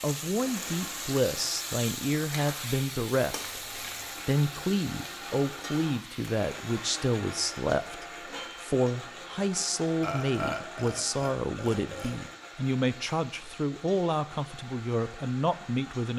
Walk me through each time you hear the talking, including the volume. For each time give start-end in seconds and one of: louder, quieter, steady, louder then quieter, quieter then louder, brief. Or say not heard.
0.0-16.1 steady.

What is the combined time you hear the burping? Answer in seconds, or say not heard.
3 s.